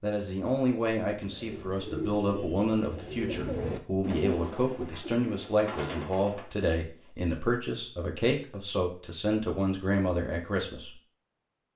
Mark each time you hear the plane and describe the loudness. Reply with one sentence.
The plane can't be heard in this clip.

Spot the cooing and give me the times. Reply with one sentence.
The cooing can be heard from 1.1 to 6.5 s.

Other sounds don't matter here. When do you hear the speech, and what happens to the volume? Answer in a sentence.
The speech can be heard from 0.0 to 10.9 s, at a steady volume.